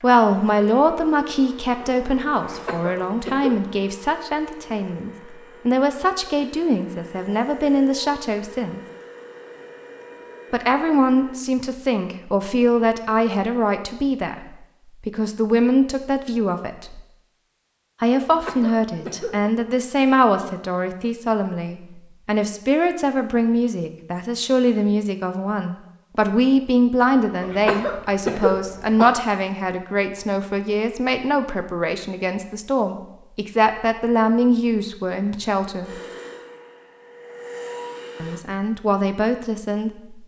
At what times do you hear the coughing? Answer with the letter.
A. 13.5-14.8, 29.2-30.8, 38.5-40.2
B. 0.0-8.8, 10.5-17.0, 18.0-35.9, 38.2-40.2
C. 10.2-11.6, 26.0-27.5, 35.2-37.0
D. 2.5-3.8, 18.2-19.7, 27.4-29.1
D.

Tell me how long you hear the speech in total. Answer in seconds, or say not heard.
35 s.